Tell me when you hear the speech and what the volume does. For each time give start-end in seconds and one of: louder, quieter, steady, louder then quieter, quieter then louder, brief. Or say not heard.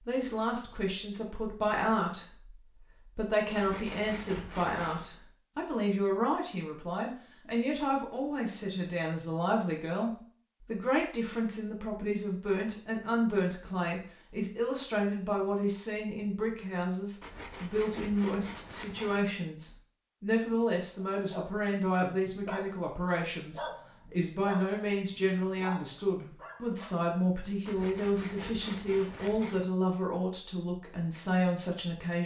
0.1-32.2 steady.